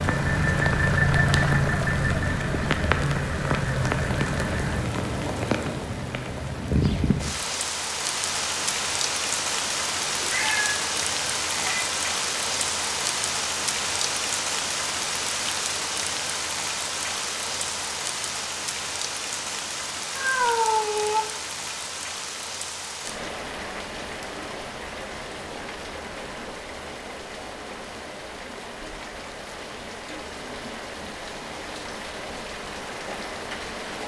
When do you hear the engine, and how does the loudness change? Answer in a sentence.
The engine can be heard from 0.0 to 4.8 s, getting quieter.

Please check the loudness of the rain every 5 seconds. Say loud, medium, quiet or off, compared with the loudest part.
loud, loud, loud, loud, medium, medium, medium.